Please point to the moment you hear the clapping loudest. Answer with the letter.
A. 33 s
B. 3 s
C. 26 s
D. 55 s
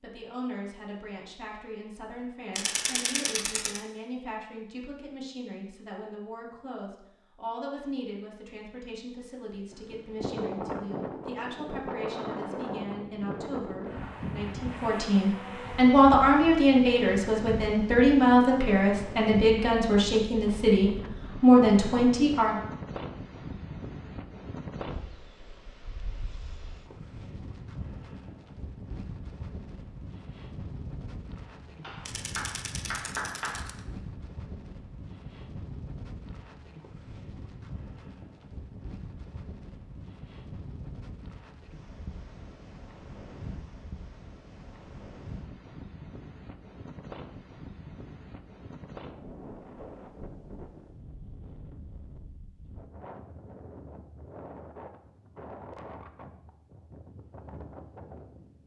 A.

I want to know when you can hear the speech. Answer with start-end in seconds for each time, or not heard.
0.0-22.6.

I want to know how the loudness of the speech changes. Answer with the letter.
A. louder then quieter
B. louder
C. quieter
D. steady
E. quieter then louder
B.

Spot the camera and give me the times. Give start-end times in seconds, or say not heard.
2.5-3.8, 32.0-33.8.